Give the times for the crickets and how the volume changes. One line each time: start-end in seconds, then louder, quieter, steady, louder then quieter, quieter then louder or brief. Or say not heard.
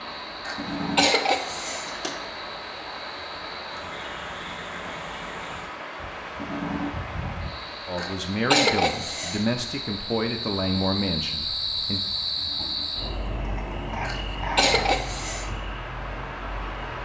0.0-17.0 louder then quieter.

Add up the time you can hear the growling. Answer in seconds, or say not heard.
4 s.